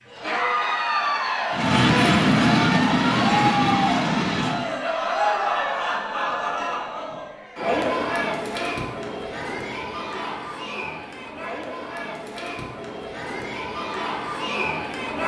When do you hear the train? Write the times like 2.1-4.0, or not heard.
1.5-4.8.